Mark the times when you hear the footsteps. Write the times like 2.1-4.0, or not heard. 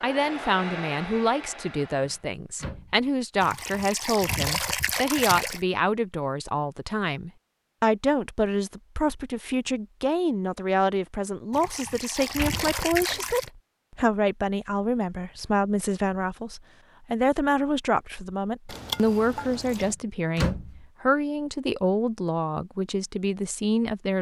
not heard.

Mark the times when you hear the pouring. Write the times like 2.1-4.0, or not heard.
3.4-5.6, 11.5-13.5, 18.6-19.9.